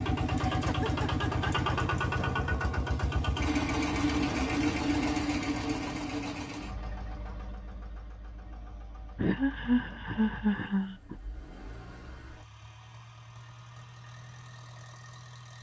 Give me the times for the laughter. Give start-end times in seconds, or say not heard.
0.3-1.8, 9.2-11.2.